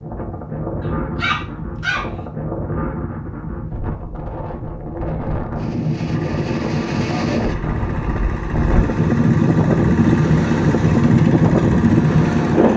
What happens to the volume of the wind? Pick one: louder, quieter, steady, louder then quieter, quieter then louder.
louder.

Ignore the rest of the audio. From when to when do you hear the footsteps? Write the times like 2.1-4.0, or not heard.
not heard.